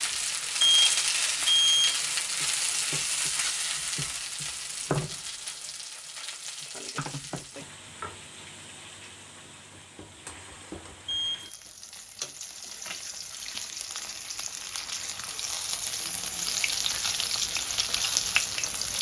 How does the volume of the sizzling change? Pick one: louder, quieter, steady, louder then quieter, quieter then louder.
quieter then louder.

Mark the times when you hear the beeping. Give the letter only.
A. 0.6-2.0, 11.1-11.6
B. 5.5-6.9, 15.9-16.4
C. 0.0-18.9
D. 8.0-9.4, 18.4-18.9
A.